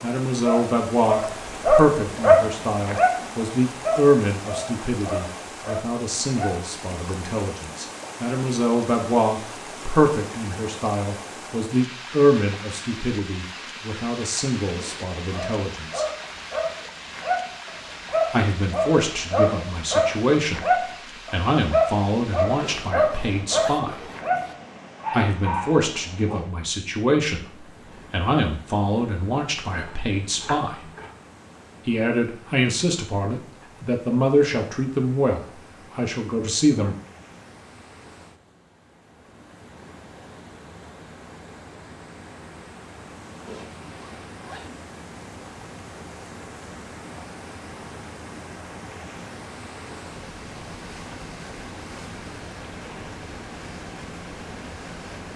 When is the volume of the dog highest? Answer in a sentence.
The volume of the dog peaks at 2 seconds.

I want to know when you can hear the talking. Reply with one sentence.
The talking can be heard from 0.0 to 16.1 s, from 18.3 to 24.1 s, from 25.1 to 30.9 s and from 31.9 to 37.0 s.